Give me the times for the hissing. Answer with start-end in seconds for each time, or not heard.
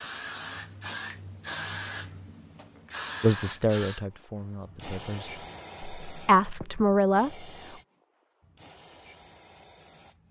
0.0-10.2.